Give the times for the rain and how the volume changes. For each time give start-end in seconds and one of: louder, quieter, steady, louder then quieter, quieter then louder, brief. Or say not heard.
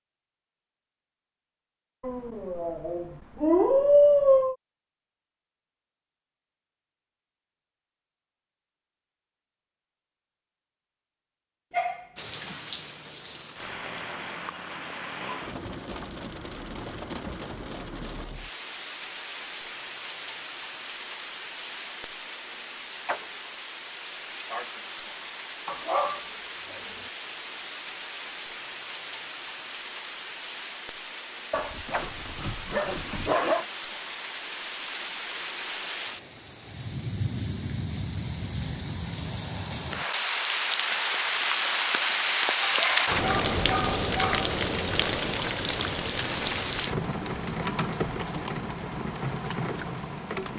12.2-50.5 louder.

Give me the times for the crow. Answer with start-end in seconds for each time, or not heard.
not heard.